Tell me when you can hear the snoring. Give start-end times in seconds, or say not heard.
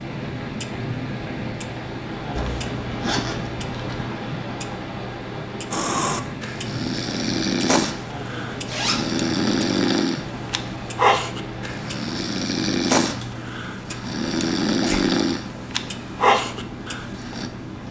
5.7-17.5.